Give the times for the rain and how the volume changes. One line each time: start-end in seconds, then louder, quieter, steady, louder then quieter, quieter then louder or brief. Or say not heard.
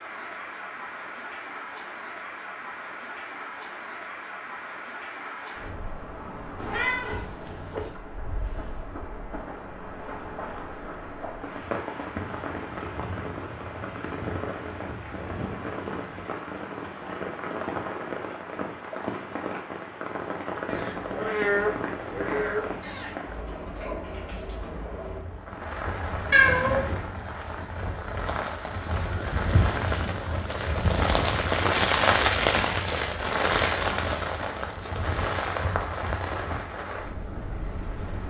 0.0-38.2 louder.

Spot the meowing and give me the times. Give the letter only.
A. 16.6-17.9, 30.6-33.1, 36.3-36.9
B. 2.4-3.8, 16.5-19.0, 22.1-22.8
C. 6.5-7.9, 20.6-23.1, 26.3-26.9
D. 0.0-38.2
C.